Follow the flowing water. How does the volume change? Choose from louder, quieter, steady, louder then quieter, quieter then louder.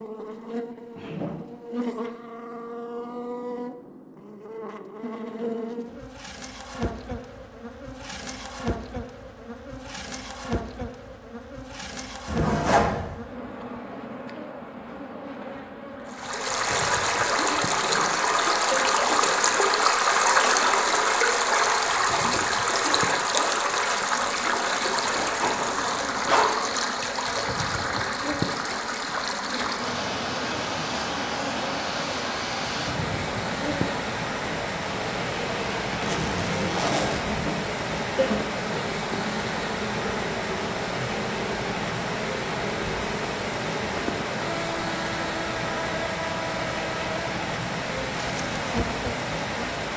quieter.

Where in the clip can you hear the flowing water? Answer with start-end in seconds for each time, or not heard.
16.1-49.9.